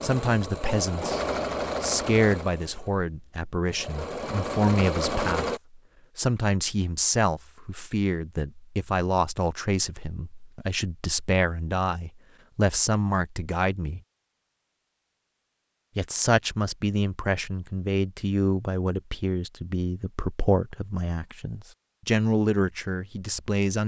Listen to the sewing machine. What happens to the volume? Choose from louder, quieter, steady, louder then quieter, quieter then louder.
quieter then louder.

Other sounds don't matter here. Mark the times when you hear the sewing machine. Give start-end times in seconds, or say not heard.
0.0-5.6.